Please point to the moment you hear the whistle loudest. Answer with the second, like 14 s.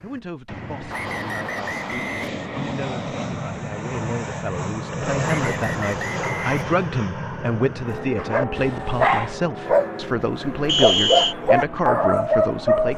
11 s.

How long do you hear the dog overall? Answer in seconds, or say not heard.
5 s.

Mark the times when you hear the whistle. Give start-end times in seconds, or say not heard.
0.9-2.3, 5.3-6.9, 10.7-11.3.